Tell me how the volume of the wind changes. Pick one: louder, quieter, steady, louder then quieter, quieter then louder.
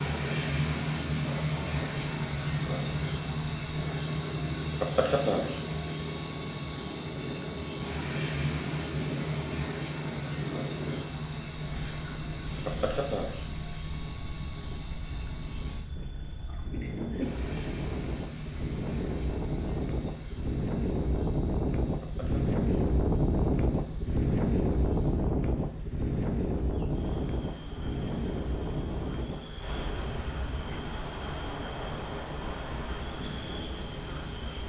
louder then quieter.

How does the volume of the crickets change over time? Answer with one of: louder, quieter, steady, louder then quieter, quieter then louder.
quieter then louder.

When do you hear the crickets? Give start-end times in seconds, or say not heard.
0.0-34.6.